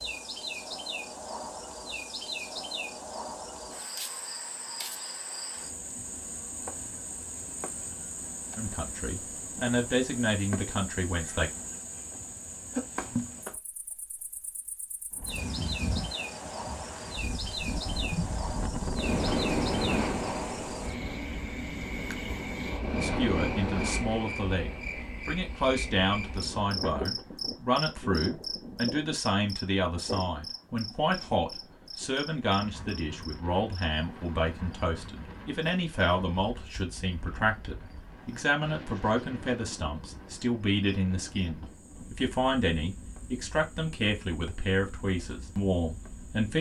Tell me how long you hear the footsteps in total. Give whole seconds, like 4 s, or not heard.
not heard.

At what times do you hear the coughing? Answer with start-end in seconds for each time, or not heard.
not heard.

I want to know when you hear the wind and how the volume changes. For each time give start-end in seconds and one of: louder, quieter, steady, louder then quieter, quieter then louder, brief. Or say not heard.
15.1-46.5 quieter.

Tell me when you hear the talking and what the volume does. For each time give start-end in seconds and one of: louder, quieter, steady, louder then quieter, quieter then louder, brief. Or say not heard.
8.6-11.5 brief
22.9-46.5 steady.